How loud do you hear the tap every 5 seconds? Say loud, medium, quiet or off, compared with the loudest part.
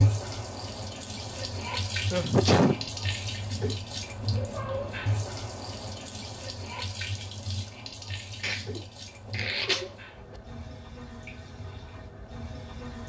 loud, medium, medium.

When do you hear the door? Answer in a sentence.
You can't hear the door here.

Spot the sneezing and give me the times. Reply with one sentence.
The sneezing can be heard from 2.1 to 2.9 s and from 8.4 to 9.8 s.